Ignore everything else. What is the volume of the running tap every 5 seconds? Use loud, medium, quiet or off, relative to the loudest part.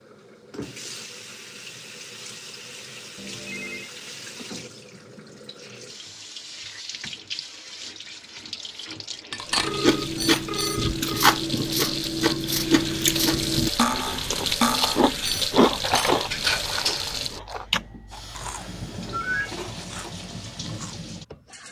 medium, medium, loud, loud, medium.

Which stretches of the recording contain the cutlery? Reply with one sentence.
The cutlery can be heard from 9.3 to 17.1 s.